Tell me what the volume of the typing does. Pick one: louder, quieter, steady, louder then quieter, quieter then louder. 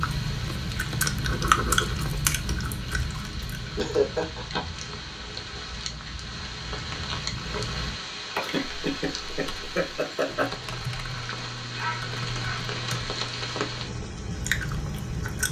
louder.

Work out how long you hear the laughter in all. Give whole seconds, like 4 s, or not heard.
3 s.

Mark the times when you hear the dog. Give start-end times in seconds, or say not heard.
11.2-12.7.